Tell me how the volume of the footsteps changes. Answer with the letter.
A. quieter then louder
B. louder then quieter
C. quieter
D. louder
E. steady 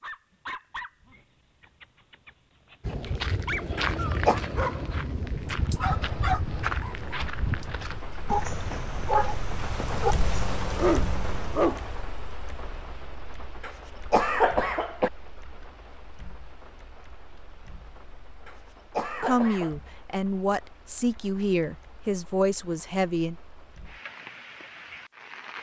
C.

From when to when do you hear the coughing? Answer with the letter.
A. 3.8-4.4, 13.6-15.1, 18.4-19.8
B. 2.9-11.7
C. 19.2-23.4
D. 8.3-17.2
A.